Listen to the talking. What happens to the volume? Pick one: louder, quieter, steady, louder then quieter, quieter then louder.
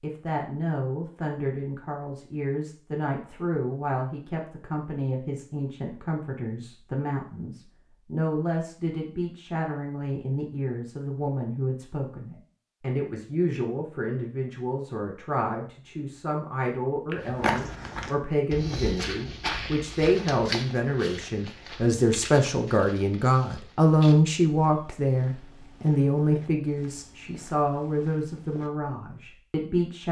louder.